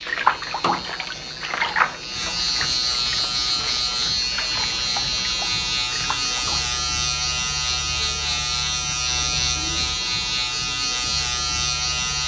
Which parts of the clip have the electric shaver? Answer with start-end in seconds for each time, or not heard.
0.0-12.2.